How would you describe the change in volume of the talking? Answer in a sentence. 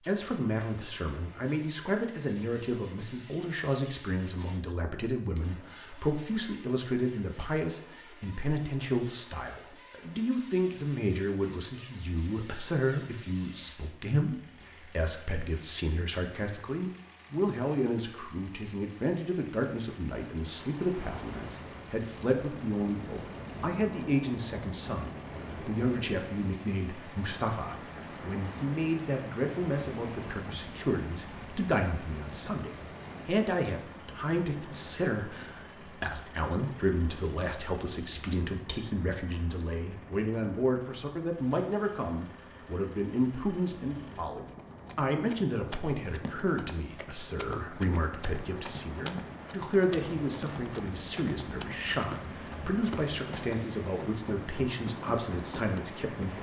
The volume of the talking stays about the same.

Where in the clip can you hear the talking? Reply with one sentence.
You can hear the talking from 0.1 to 56.3 s.